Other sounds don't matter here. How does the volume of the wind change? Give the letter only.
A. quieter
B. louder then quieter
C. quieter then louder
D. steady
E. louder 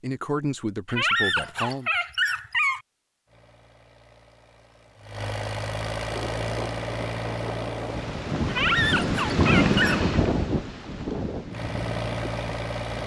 B.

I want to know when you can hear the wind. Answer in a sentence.
You can hear the wind from 6.0 to 13.0 s.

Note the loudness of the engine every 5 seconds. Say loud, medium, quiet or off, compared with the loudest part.
quiet, loud, loud.